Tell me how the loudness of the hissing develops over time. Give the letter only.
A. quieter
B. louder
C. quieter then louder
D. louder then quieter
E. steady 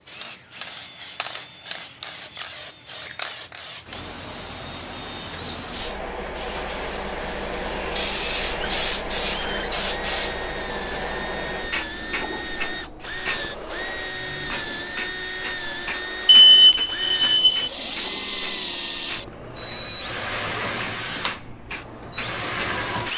D.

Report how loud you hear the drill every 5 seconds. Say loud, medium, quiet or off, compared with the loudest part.
quiet, medium, loud, loud, loud.